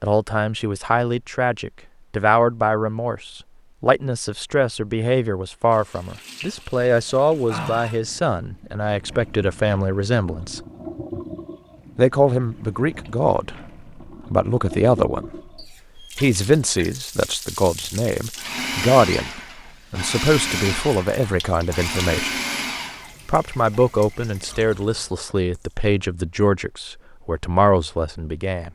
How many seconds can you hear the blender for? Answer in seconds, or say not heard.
5 s.